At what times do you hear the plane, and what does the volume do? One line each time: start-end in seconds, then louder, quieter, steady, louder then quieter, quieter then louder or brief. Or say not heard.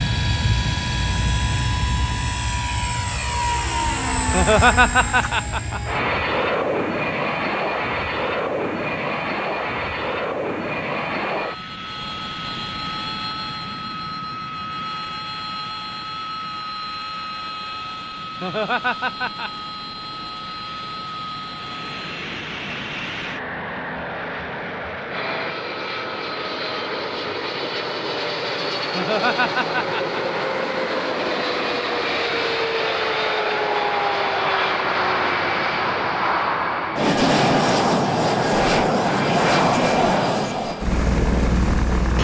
0.0-42.1 quieter then louder.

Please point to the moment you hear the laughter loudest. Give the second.
5 s.